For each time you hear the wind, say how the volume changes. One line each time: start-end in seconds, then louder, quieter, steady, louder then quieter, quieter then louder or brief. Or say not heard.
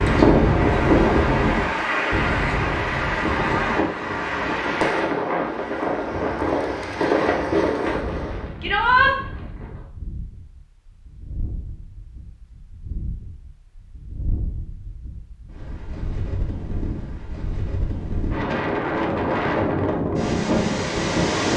0.0-21.5 quieter then louder.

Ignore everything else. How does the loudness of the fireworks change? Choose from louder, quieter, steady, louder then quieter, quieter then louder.
quieter then louder.